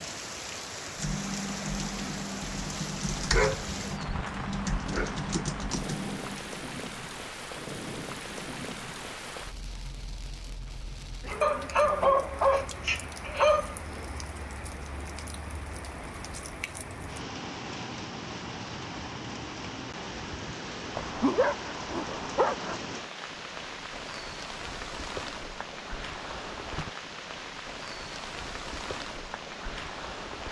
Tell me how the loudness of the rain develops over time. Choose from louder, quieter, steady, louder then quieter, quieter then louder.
steady.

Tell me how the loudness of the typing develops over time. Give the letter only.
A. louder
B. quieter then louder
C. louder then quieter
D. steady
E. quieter
D.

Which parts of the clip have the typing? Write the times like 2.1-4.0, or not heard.
0.9-6.5.